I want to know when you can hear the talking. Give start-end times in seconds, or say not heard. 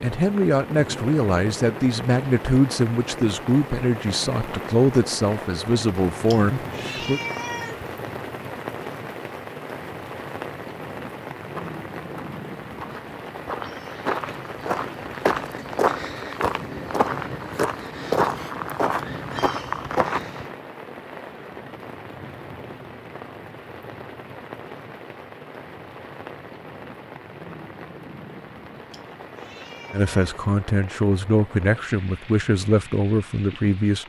0.0-7.2, 29.9-34.0.